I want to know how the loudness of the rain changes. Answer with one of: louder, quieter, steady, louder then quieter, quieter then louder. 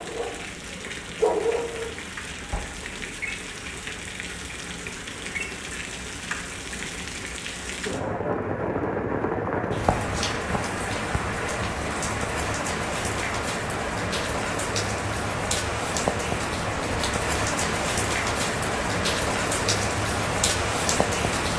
louder.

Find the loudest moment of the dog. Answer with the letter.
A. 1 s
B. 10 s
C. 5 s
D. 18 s
A.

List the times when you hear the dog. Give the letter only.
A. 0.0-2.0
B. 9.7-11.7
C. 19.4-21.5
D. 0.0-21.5
A.